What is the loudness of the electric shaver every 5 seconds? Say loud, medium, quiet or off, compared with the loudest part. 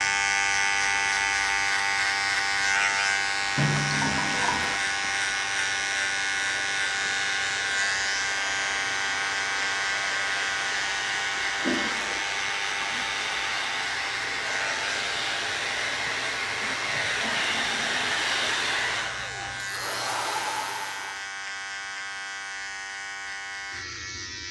loud, loud, medium, medium, medium.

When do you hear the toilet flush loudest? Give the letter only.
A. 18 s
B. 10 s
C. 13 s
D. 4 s
D.